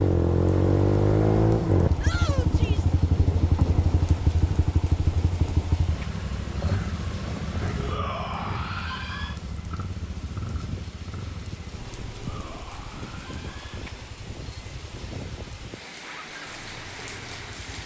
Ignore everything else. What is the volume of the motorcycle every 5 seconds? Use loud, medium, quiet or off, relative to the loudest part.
loud, medium, quiet, quiet.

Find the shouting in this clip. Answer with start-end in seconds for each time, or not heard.
2.0-3.0, 7.8-9.3, 12.1-13.9.